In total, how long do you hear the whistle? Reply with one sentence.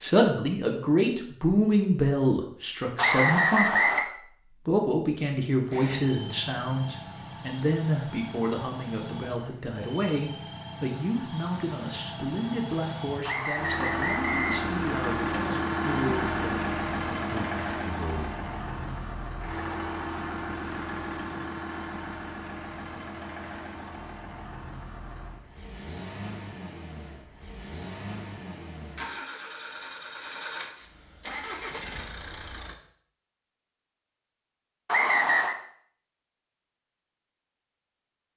The whistle can be heard for 3 seconds in total.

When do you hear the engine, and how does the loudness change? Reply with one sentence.
You can hear the engine from 5.7 to 32.8 s, getting louder then quieter.